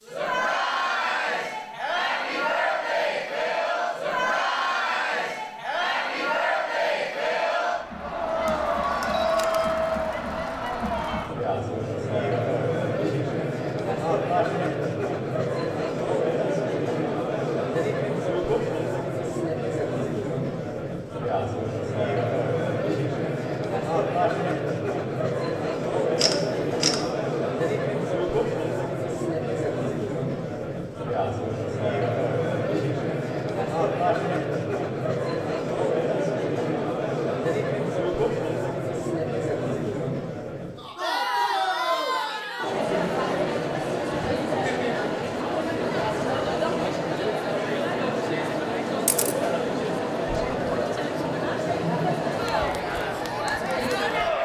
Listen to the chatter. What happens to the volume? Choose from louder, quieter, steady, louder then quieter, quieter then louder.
steady.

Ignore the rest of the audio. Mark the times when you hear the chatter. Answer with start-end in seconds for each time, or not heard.
0.0-54.4.